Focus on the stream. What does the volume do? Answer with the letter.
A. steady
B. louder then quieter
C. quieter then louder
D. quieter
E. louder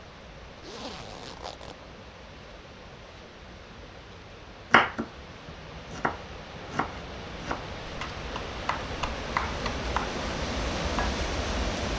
E.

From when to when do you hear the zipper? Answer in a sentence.
The zipper can be heard from 0.6 to 1.8 s.